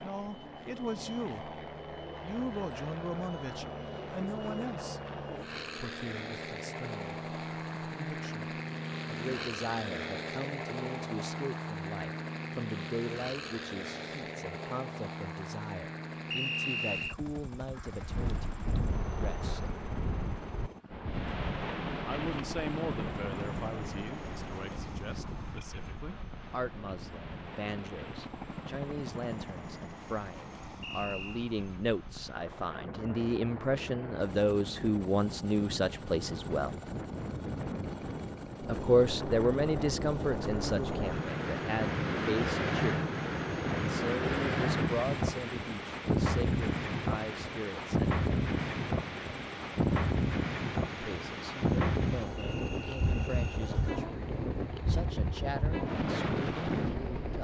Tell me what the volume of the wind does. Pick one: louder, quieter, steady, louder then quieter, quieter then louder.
quieter then louder.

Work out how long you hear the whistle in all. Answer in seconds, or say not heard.
3 s.